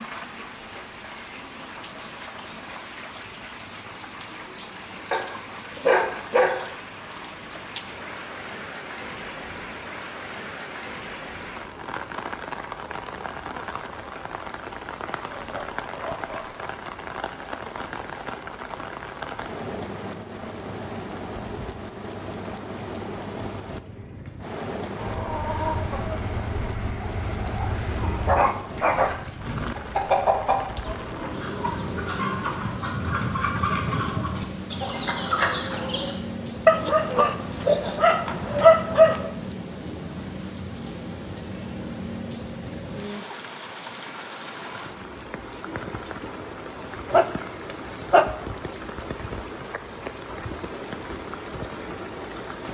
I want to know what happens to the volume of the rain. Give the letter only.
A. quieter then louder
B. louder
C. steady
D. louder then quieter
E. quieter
C.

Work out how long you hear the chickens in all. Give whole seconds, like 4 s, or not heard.
11 s.